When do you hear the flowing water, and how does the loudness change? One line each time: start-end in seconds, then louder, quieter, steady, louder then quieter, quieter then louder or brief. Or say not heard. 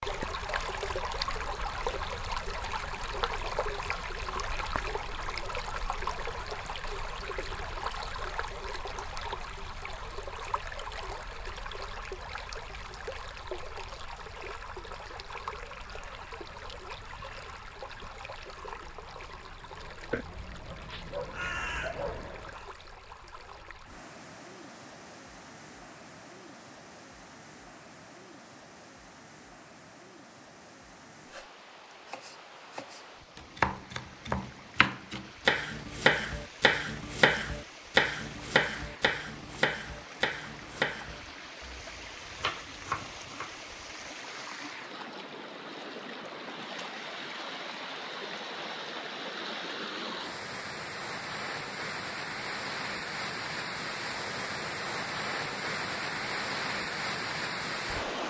0.0-58.2 quieter then louder.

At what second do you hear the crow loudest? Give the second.
22 s.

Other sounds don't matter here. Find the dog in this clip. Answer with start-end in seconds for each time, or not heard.
20.1-21.6.